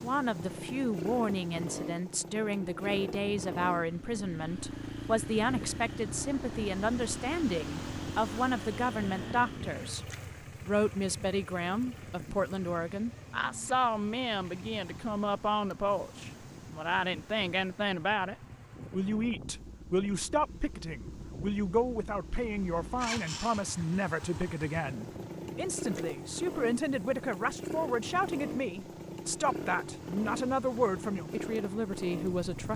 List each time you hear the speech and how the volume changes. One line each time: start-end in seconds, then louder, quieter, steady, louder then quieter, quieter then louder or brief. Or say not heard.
0.0-10.1 steady
10.7-32.7 steady.